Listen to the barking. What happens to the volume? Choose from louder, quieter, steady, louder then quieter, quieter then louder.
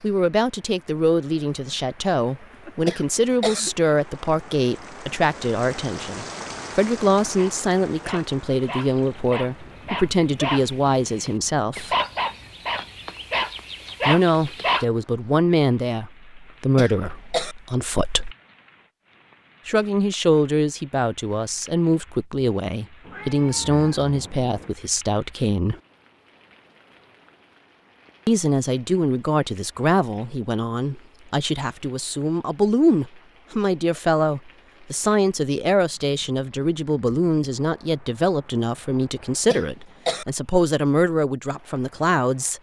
louder.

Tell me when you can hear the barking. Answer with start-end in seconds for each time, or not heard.
7.3-14.8.